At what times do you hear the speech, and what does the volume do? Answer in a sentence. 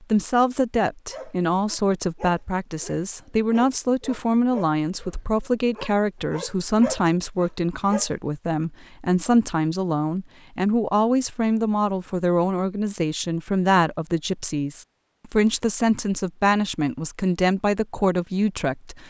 The speech can be heard from 0.0 to 19.0 s, at a steady volume.